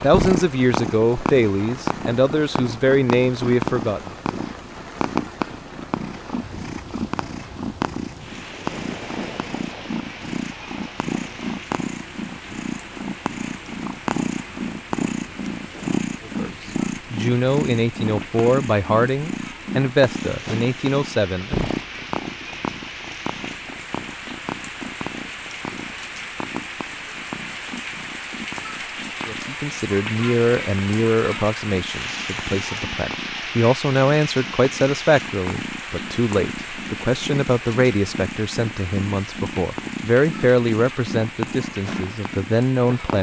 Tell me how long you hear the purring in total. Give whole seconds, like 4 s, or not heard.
43 s.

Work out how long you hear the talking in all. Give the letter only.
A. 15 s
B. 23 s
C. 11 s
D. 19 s
B.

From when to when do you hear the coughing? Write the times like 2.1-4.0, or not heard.
not heard.